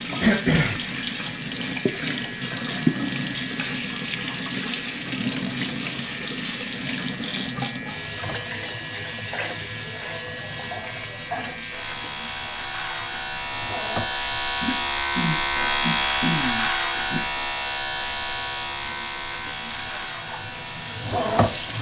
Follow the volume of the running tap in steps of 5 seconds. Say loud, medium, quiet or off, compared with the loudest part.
loud, loud, medium, quiet, loud.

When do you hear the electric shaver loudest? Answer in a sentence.
The loudest moment of the electric shaver is at 16 seconds.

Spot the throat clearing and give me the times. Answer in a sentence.
The throat clearing can be heard from 0.2 to 0.8 s, from 10.5 to 11.6 s and from 14.6 to 17.2 s.